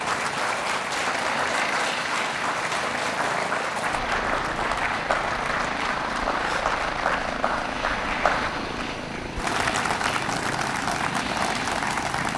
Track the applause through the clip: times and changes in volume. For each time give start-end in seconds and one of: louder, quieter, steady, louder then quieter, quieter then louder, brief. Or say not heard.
0.0-12.3 steady.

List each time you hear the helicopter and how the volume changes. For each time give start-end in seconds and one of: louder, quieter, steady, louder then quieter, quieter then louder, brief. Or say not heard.
0.0-12.3 steady.